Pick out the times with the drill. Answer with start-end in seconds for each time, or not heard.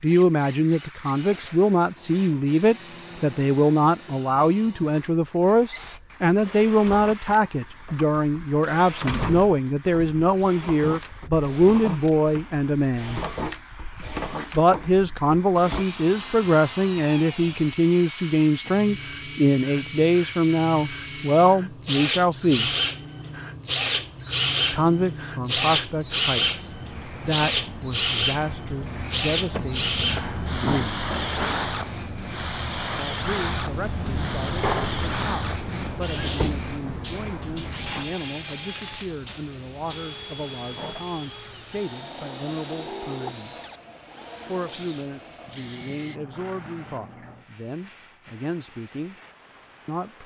0.0-46.2.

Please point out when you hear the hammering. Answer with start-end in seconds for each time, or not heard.
not heard.